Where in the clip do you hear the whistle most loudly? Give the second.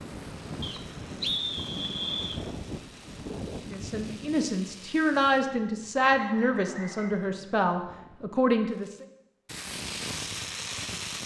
1 s.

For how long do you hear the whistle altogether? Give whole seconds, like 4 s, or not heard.
3 s.